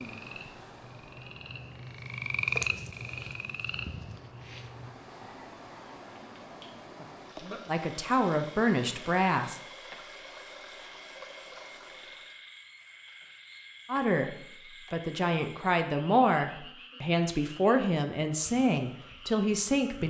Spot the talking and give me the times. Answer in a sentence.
You can hear the talking from 7.7 to 9.6 s and from 13.8 to 20.0 s.